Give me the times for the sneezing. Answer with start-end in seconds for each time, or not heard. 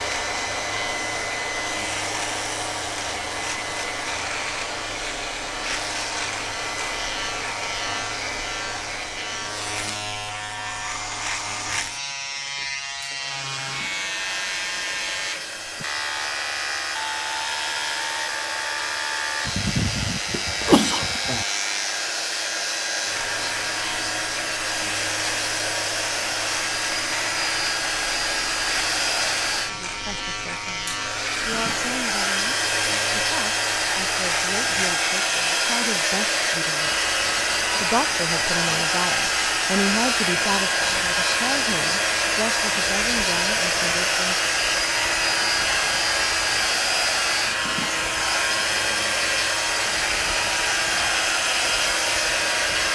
19.4-21.4.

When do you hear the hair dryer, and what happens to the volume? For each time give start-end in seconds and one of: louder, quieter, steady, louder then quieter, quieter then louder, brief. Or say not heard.
0.0-52.9 louder.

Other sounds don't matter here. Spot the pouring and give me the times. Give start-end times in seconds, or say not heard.
not heard.